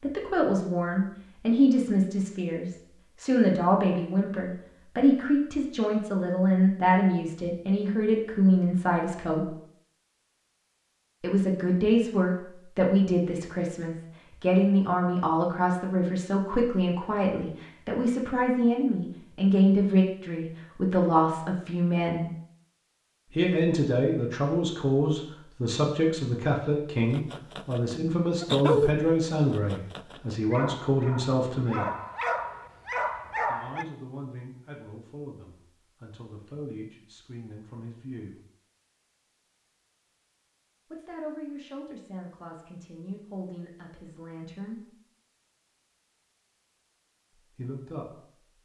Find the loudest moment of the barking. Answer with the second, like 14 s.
29 s.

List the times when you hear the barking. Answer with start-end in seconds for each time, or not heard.
27.1-33.9.